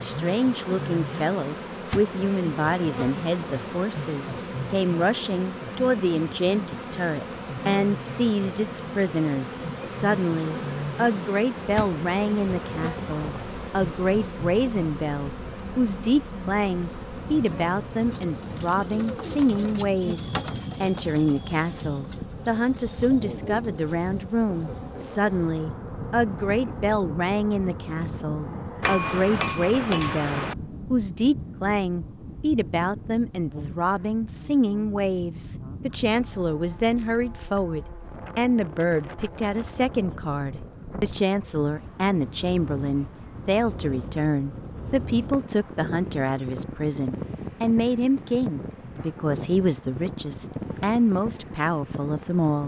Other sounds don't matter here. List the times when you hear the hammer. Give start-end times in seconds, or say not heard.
28.8-30.6.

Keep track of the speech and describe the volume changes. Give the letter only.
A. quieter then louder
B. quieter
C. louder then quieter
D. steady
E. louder
D.